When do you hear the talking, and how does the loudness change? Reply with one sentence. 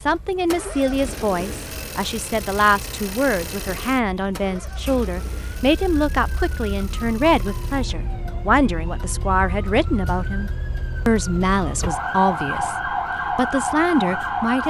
You can hear the talking from 0.1 to 14.6 s, at a steady volume.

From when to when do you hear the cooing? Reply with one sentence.
The cooing can't be heard in this clip.